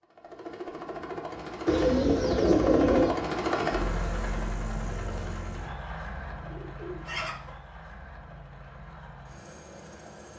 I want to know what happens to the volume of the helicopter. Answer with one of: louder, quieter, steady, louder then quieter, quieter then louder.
louder then quieter.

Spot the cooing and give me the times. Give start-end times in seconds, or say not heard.
1.6-3.1, 6.4-7.5.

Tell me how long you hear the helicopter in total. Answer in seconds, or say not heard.
10 s.